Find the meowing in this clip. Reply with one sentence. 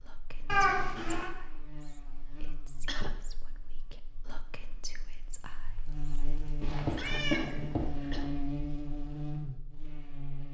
You can hear the meowing from 0.5 to 1.3 s and from 6.6 to 8.2 s.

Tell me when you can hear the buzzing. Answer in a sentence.
The buzzing can be heard from 0.0 to 10.5 s.